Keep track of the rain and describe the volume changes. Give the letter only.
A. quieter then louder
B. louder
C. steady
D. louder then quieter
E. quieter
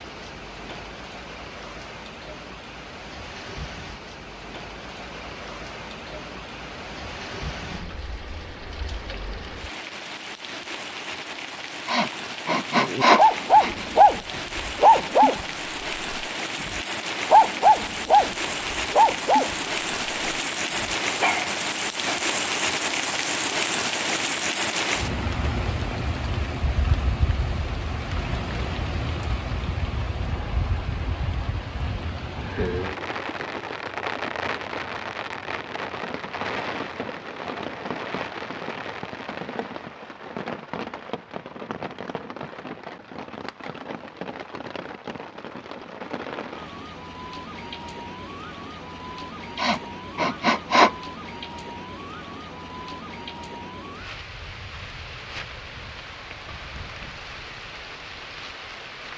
D.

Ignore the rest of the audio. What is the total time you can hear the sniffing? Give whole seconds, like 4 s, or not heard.
3 s.